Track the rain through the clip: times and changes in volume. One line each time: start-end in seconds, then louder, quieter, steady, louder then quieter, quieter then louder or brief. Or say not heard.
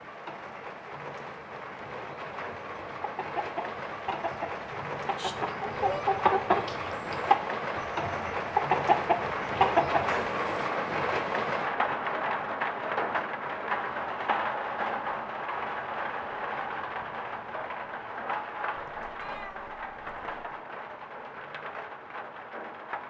0.0-23.0 louder then quieter.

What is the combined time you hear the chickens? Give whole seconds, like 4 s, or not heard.
8 s.